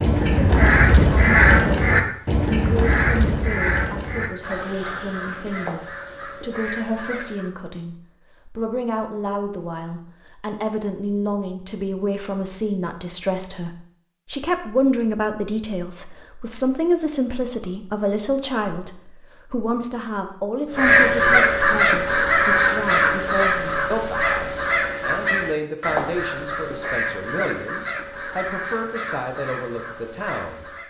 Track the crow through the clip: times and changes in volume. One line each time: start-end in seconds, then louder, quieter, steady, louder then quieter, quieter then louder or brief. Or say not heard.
0.0-7.5 quieter
20.7-30.8 quieter.